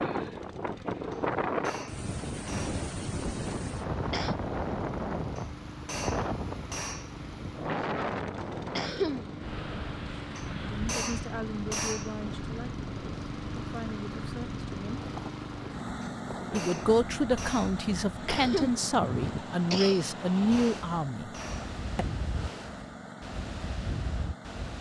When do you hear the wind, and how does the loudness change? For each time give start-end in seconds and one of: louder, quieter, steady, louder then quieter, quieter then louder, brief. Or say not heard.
0.0-24.7 quieter.